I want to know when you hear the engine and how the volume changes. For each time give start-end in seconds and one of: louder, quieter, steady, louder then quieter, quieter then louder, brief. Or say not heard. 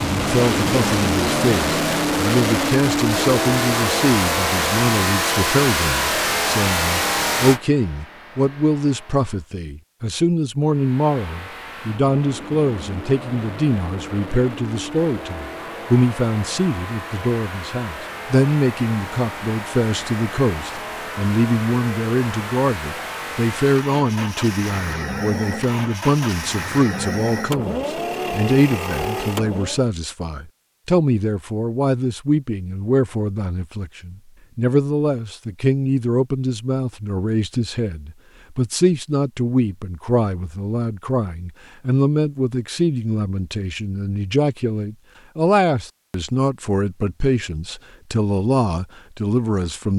0.0-9.5 quieter
10.6-29.9 louder.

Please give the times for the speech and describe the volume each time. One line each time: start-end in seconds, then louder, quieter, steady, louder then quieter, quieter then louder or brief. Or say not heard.
0.1-49.9 steady.